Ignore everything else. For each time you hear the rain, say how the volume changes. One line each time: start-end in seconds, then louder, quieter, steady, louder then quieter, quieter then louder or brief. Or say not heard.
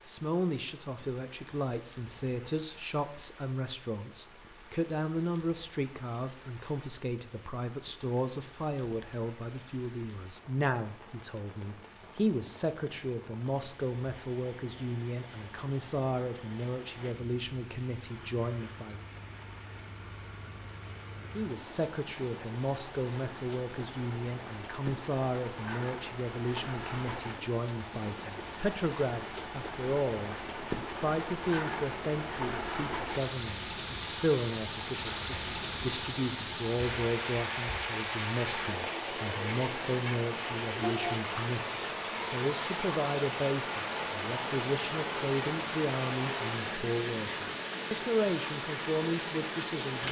0.0-50.0 louder.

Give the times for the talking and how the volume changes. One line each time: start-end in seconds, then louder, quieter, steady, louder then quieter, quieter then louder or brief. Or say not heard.
0.0-19.0 steady
21.4-50.0 steady.